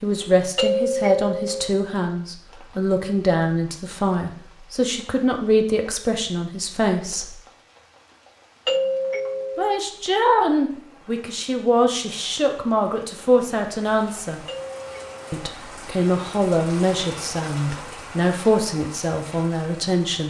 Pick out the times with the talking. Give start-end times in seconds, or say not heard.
0.0-7.3, 9.6-14.4, 15.3-20.2.